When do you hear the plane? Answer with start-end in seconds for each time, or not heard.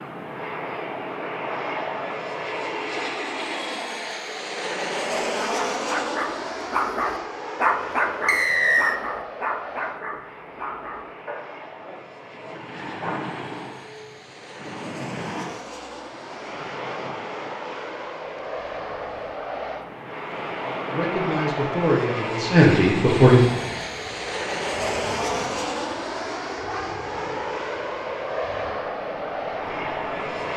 0.0-30.5.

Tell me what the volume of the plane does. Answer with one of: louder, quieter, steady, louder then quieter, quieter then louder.
quieter then louder.